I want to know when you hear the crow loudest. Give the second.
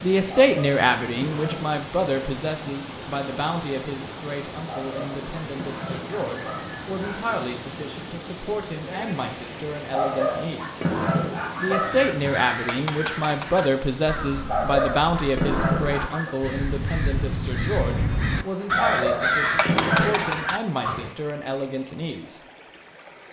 19 s.